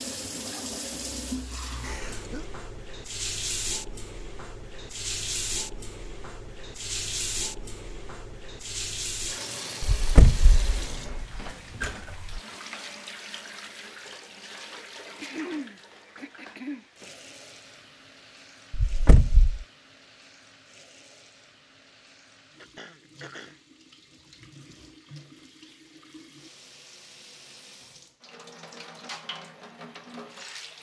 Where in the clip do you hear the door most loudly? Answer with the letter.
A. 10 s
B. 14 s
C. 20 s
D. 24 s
A.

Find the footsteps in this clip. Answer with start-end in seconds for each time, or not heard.
not heard.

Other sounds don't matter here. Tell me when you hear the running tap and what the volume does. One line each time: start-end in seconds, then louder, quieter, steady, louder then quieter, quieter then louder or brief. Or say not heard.
0.0-30.7 quieter then louder.